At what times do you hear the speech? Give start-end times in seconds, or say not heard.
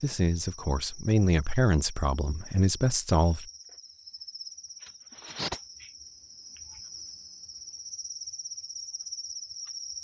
0.0-3.5.